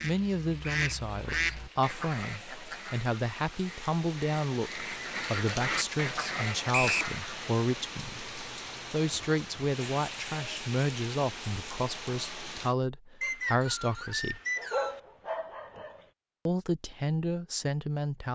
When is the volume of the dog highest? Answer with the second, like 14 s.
15 s.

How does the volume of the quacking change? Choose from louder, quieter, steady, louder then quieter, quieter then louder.
quieter then louder.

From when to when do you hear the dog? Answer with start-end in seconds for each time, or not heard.
14.6-16.1.